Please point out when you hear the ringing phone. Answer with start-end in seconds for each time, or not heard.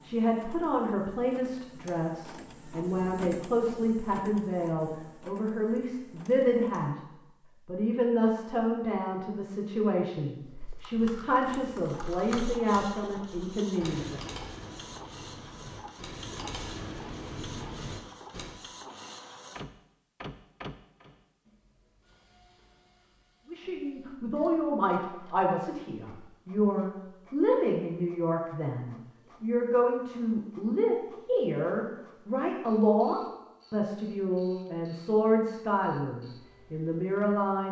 18.9-19.5.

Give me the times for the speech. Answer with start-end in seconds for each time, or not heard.
0.0-7.0, 7.7-14.2, 23.4-37.6.